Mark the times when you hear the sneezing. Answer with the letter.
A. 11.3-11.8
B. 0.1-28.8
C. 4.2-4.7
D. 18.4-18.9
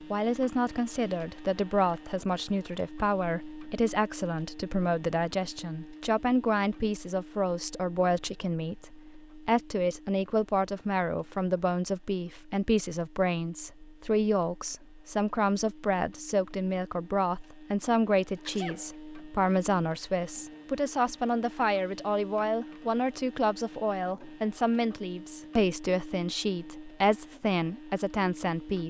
D.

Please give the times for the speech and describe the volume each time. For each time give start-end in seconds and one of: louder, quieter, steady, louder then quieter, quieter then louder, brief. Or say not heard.
0.1-28.8 steady.